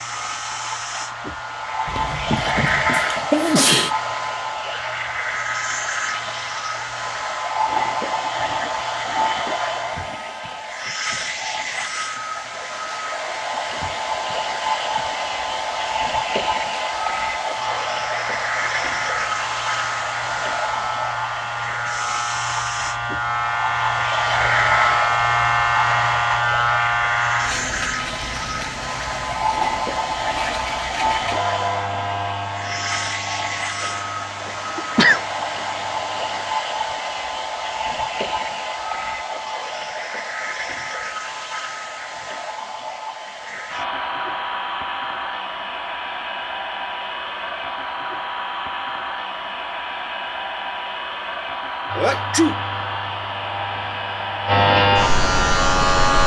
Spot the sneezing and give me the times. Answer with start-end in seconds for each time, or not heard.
1.9-3.9, 34.8-35.2, 52.0-52.6.